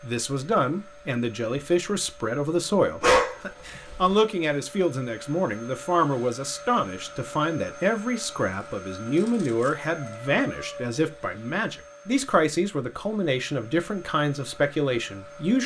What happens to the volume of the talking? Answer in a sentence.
The loudness of the talking stays about the same.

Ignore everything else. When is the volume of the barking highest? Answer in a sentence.
The volume of the barking peaks at 3 seconds.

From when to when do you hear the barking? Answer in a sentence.
You can hear the barking from 3.0 to 4.2 s and from 9.8 to 11.0 s.